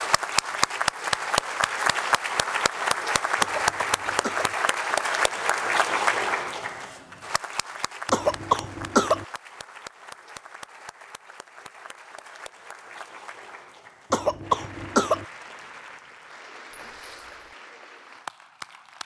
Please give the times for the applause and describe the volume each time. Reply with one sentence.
The applause can be heard from 0.0 to 19.0 s, getting quieter.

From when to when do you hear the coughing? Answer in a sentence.
The coughing can be heard from 3.4 to 4.5 s, from 8.1 to 9.2 s and from 14.1 to 15.2 s.